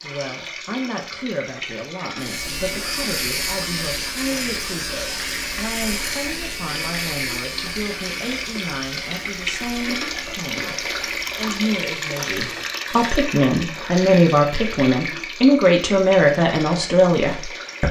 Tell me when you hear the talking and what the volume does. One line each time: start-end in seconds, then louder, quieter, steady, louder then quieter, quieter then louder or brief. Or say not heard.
0.0-17.8 louder.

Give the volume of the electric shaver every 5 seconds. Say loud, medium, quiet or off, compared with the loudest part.
loud, loud, medium, off.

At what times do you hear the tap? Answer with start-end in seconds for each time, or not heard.
0.0-17.8.